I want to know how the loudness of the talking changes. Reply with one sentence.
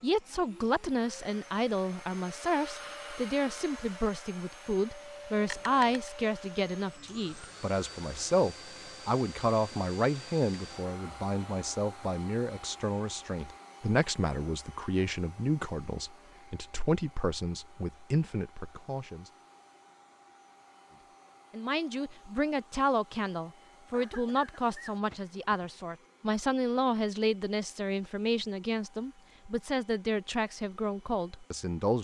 The loudness of the talking stays about the same.